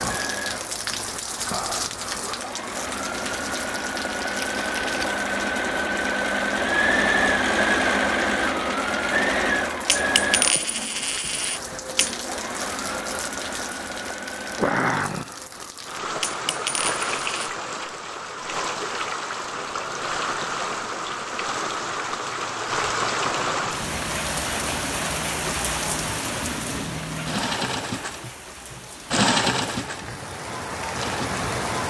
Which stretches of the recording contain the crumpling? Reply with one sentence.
You can hear the crumpling from 4.1 to 5.2 s.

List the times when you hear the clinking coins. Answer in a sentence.
The clinking coins can be heard from 9.8 to 12.2 s and from 16.2 to 17.5 s.